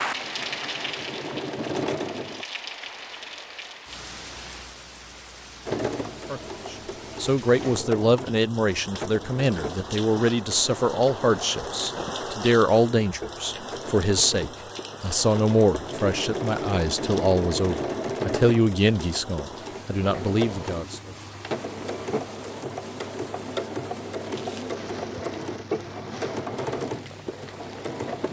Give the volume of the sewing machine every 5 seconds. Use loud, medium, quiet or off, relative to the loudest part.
loud, loud, medium, loud, loud, loud.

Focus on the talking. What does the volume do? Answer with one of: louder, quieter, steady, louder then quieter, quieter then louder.
steady.